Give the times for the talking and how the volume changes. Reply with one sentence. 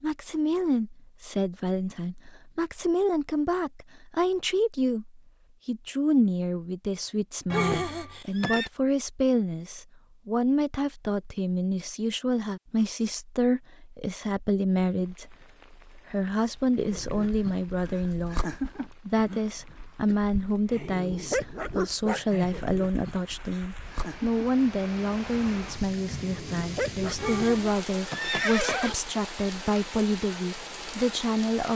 You can hear the talking from 0.0 to 31.7 s, at a steady volume.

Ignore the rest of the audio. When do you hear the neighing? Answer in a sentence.
The neighing can be heard from 7.5 to 8.7 s and from 27.1 to 28.9 s.